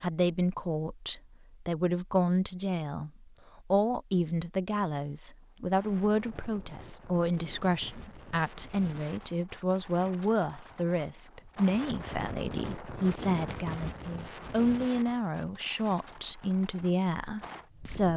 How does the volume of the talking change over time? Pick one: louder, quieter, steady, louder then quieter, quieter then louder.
steady.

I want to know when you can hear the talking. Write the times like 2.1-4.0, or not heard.
0.0-18.1.